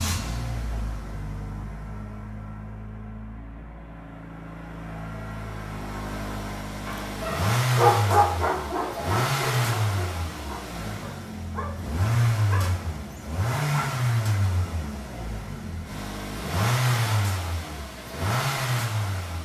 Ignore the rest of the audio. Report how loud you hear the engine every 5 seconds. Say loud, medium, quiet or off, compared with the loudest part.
medium, loud, loud, loud.